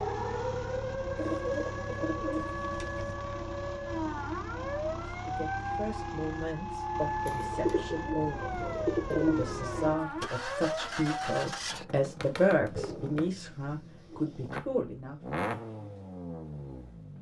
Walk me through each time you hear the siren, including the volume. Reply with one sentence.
The siren can be heard from 0.0 to 11.6 s, at a steady volume.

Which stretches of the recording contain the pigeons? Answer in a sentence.
The pigeons can be heard from 1.1 to 3.1 s, from 7.2 to 9.9 s and from 12.7 to 14.6 s.